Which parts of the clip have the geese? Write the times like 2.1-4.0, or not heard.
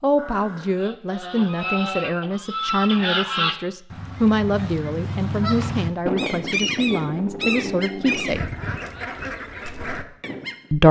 0.8-10.6.